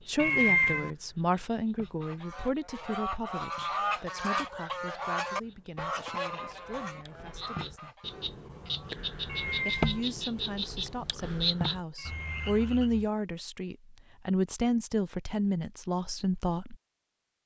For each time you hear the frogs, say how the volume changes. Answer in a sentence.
You can hear the frogs from 0.0 to 13.1 s, getting louder.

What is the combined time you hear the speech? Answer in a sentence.
You can hear the speech for 15 seconds altogether.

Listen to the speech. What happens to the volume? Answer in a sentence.
The loudness of the speech goes down, then up.